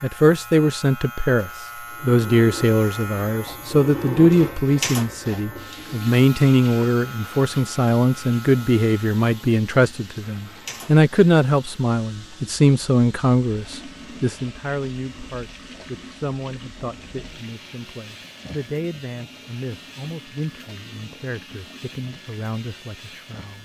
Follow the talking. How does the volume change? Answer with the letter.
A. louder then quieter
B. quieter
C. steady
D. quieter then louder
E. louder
B.